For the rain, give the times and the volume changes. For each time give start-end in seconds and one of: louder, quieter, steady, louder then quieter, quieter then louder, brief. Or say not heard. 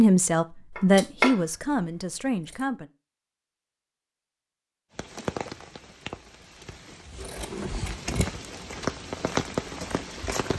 5.0-10.5 quieter then louder.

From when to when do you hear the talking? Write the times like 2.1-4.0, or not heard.
0.0-2.9.